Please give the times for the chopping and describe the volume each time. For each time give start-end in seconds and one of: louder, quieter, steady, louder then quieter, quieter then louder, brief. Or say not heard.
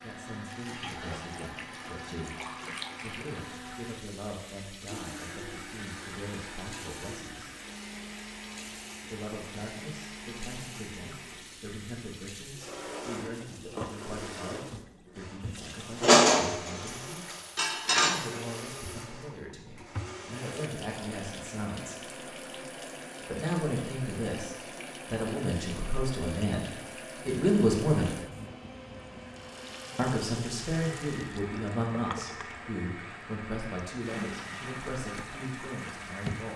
not heard.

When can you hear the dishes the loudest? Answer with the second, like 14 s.
16 s.